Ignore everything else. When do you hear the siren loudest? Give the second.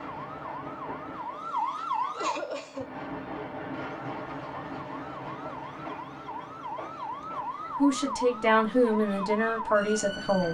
2 s.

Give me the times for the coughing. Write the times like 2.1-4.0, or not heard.
2.1-3.0.